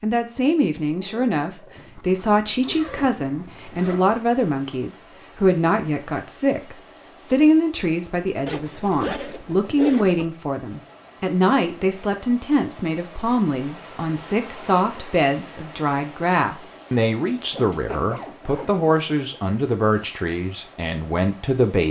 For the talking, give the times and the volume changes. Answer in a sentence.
The talking can be heard from 0.0 to 21.8 s, at a steady volume.